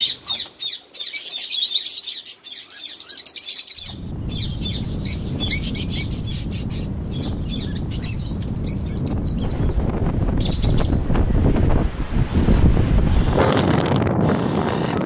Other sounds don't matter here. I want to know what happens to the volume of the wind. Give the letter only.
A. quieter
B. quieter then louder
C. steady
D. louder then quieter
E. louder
E.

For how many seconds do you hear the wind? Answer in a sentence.
You can hear the wind for 11 seconds altogether.